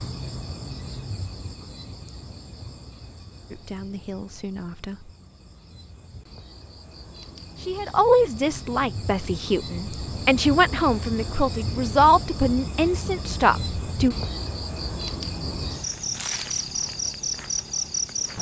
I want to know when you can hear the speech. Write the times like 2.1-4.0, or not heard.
3.5-5.2, 7.5-14.2.